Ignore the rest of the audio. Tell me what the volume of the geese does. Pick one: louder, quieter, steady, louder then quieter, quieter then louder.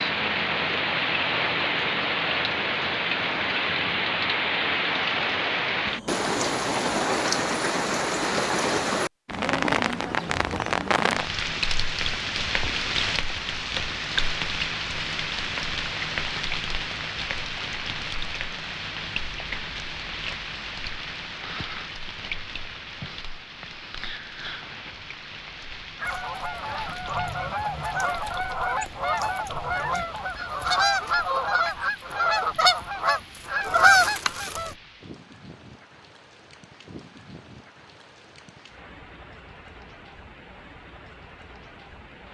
louder.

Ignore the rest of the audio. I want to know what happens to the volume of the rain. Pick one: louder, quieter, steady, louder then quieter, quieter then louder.
quieter.